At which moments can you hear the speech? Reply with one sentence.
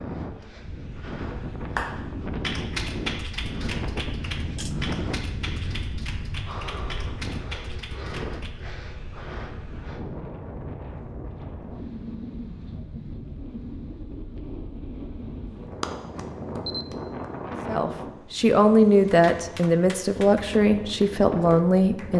The speech can be heard from 17.6 to 22.1 s.